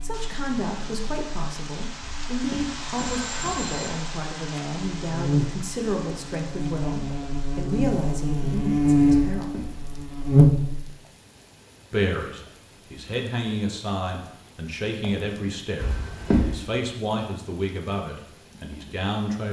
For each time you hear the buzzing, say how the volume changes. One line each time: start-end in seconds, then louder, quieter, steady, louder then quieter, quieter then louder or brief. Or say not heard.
0.0-10.8 louder.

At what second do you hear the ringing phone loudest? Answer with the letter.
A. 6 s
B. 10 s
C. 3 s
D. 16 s
D.